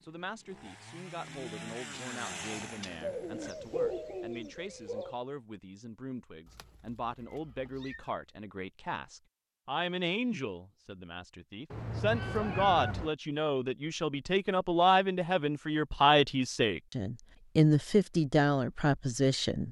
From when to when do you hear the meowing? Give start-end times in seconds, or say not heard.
6.5-8.1, 11.7-13.1.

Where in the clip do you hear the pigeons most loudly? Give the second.
4 s.